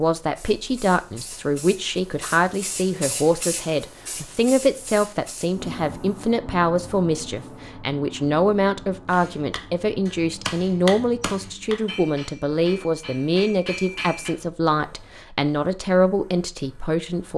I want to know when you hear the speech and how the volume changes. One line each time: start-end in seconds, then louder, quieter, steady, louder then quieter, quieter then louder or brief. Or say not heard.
0.0-17.3 steady.